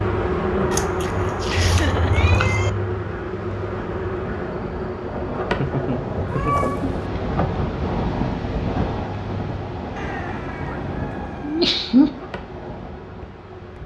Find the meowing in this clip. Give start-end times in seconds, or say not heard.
0.7-2.7, 6.2-7.0, 9.9-11.8.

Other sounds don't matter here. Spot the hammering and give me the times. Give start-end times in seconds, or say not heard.
not heard.